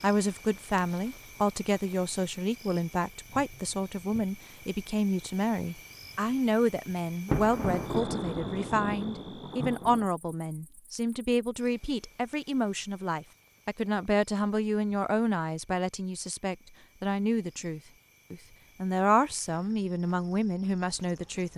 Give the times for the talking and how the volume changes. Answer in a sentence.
The talking can be heard from 0.0 to 21.5 s, at a steady volume.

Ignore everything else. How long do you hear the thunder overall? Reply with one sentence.
You can hear the thunder for 3 seconds altogether.